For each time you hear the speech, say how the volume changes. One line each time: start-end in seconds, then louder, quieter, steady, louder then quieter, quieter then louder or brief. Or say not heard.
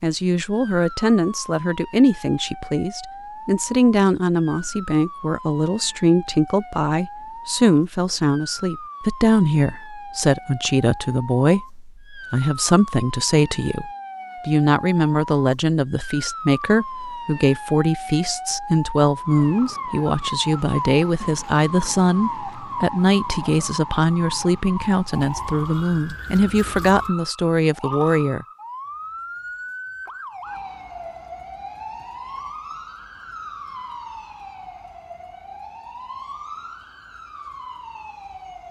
0.0-28.4 steady.